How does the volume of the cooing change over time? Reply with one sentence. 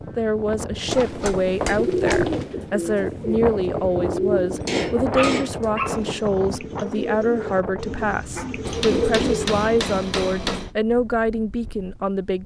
The volume of the cooing goes down, then up.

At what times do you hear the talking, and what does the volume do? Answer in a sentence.
You can hear the talking from 0.1 to 12.4 s, at a steady volume.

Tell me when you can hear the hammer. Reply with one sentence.
The hammer can be heard from 0.8 to 2.4 s, from 4.7 to 6.2 s and from 8.7 to 10.7 s.